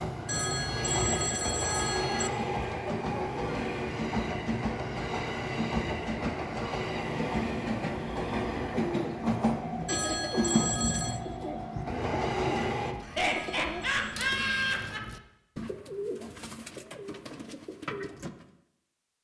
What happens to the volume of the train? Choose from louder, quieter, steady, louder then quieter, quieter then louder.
steady.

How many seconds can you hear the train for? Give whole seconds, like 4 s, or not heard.
13 s.